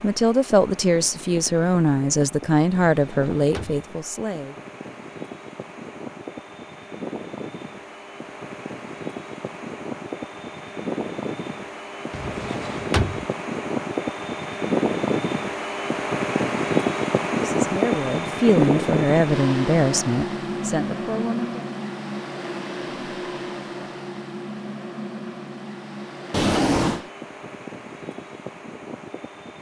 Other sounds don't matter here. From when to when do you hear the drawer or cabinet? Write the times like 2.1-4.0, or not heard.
2.9-3.9, 12.1-13.2, 26.3-27.0.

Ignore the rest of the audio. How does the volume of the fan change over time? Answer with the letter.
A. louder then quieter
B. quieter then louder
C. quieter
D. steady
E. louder
A.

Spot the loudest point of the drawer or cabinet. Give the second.
27 s.